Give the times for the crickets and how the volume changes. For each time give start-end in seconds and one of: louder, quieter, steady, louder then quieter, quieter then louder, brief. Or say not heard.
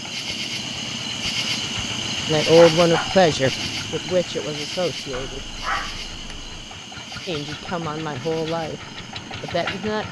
0.0-10.0 quieter.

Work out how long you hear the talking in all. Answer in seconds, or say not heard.
5 s.